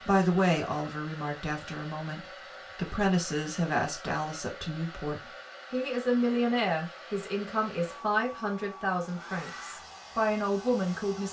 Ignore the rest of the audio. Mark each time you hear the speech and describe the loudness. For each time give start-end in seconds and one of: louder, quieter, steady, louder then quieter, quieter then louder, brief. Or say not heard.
0.0-11.2 steady.